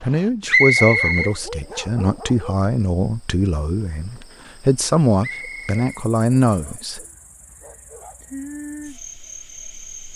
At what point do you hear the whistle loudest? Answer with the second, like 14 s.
1 s.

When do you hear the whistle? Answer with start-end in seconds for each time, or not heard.
0.5-1.3, 5.2-6.7.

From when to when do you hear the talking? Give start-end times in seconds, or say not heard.
0.0-7.0.